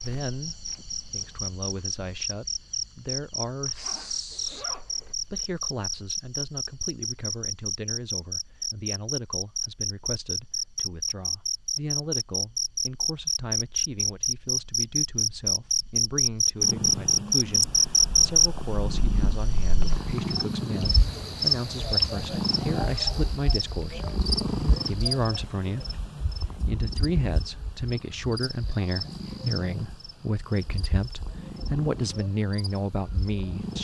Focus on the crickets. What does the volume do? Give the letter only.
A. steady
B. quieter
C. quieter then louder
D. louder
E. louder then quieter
E.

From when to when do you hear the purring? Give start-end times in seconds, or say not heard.
16.6-33.7.